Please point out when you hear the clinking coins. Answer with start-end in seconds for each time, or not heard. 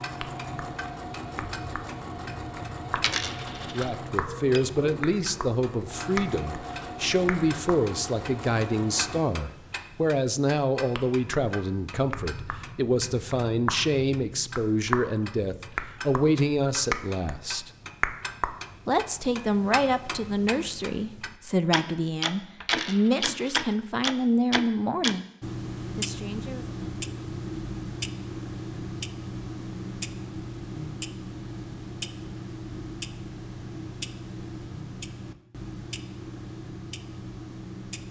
3.0-3.9, 22.6-23.8.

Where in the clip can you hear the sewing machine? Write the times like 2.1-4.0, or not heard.
0.0-9.2.